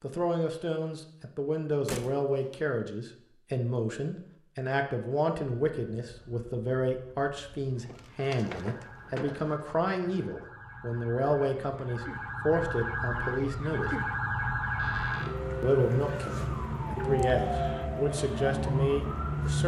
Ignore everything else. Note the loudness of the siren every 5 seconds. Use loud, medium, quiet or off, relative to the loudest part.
off, quiet, loud, loud.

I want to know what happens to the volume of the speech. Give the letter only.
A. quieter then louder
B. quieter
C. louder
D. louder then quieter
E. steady
E.